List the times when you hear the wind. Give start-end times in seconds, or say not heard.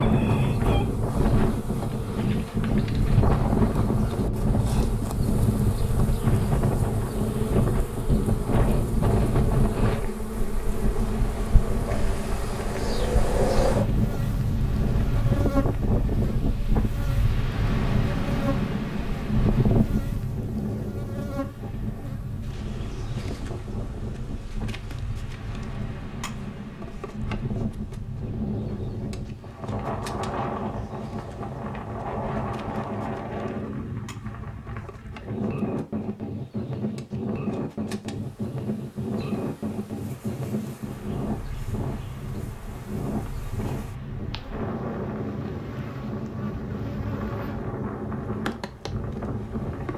0.0-49.9.